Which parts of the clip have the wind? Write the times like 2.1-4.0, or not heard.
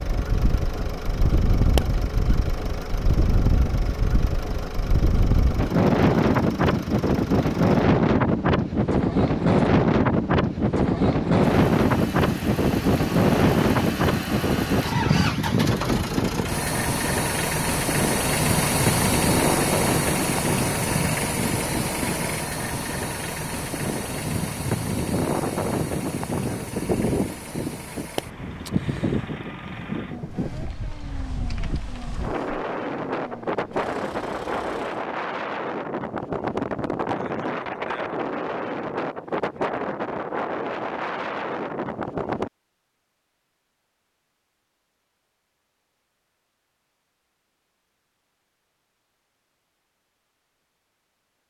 0.0-42.5.